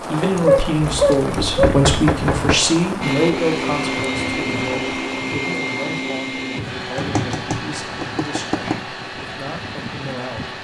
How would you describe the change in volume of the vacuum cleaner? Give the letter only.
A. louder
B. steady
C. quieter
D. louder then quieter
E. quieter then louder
C.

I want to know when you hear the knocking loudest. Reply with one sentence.
The loudest moment of the knocking is at 2 seconds.